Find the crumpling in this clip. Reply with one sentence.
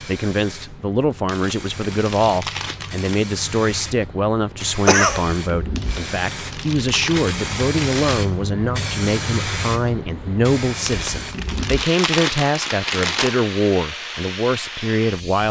You can hear the crumpling from 1.2 to 3.2 s, from 5.8 to 8.2 s and from 10.8 to 13.4 s.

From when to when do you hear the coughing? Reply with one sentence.
The coughing can be heard from 4.8 to 5.2 s.